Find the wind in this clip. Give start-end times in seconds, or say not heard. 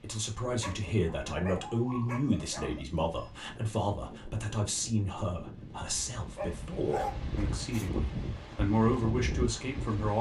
0.0-10.1.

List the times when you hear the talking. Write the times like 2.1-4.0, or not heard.
0.0-10.1.